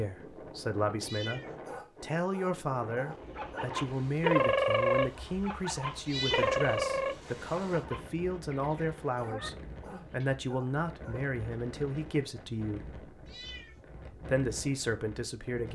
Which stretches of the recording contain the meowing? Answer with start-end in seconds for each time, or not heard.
1.0-1.6, 6.0-6.6, 13.2-13.8.